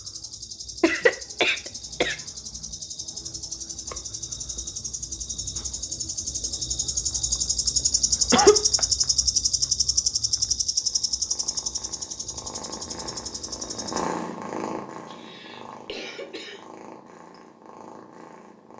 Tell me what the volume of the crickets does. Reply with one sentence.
The loudness of the crickets goes up, then down.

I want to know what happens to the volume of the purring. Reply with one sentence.
The loudness of the purring goes up, then down.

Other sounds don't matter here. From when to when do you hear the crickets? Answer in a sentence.
You can hear the crickets from 0.0 to 14.1 s.